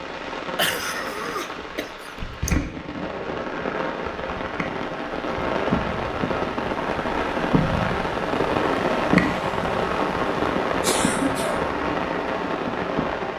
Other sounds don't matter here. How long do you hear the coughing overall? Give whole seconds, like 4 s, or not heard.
3 s.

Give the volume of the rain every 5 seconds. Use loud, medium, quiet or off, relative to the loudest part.
medium, loud, loud.